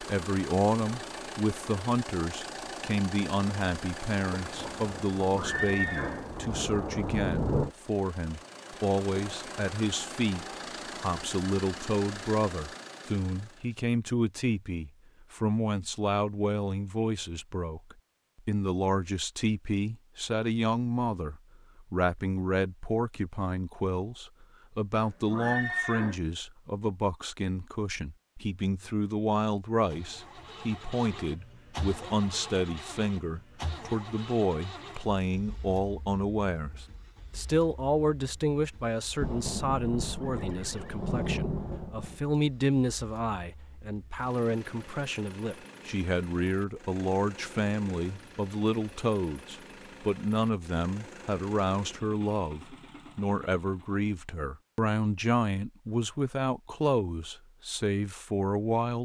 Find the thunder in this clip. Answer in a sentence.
You can hear the thunder from 4.5 to 7.8 s and from 39.2 to 42.2 s.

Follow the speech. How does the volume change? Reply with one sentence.
The loudness of the speech stays about the same.